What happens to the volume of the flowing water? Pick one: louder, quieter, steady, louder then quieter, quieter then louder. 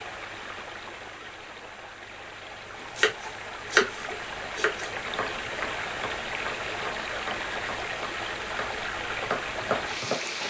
louder.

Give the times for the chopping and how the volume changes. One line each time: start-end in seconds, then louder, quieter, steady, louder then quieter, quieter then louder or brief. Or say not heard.
3.0-10.2 quieter then louder.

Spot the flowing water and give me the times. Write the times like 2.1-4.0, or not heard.
0.0-10.4.